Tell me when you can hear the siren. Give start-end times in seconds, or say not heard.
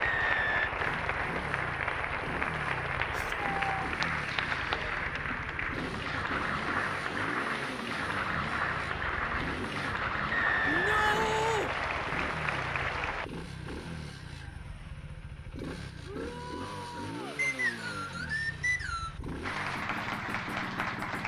not heard.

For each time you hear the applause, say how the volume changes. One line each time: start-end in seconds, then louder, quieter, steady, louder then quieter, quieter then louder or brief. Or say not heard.
0.0-13.2 steady
19.4-21.2 brief.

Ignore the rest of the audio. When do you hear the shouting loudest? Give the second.
11 s.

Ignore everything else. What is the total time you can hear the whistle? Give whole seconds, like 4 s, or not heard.
4 s.